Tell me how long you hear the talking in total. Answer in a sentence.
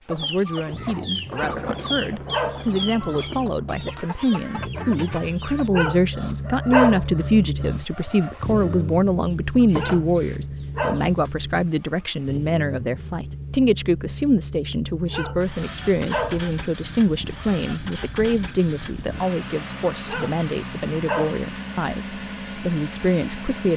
You can hear the talking for 24 seconds altogether.